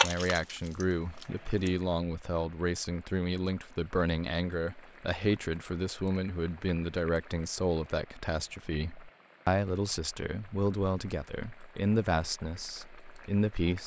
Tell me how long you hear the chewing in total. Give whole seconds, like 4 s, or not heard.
2 s.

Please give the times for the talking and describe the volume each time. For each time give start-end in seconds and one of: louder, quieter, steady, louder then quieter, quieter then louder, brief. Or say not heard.
0.0-13.8 steady.